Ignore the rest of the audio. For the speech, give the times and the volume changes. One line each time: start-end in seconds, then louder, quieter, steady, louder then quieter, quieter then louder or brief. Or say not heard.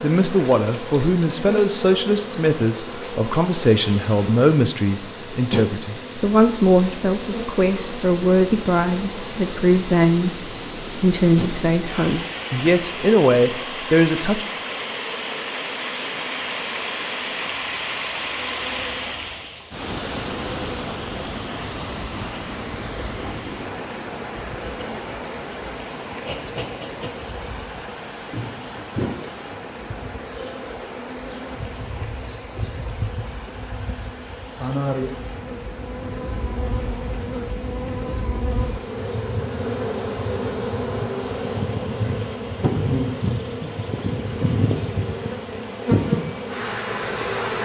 0.0-14.4 steady.